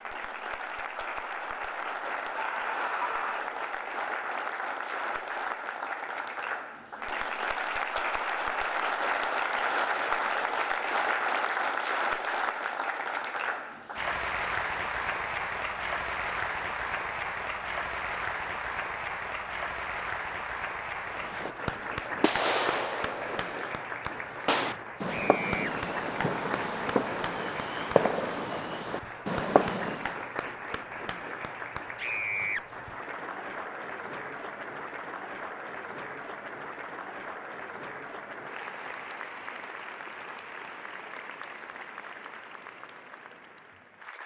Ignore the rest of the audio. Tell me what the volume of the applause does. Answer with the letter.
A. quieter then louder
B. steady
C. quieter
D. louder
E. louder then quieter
C.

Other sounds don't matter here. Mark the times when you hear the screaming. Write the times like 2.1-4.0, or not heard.
2.4-3.5, 25.1-25.8, 31.9-32.6.